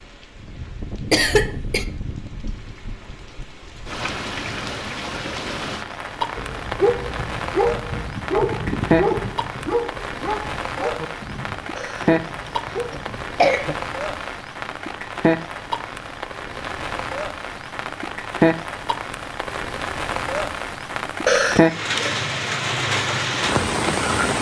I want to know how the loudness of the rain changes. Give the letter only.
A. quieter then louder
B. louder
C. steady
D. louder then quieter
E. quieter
B.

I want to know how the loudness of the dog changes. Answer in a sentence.
The volume of the dog goes down.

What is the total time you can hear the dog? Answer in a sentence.
You can hear the dog for 7 seconds altogether.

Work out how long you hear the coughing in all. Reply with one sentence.
The coughing can be heard for 4 seconds in total.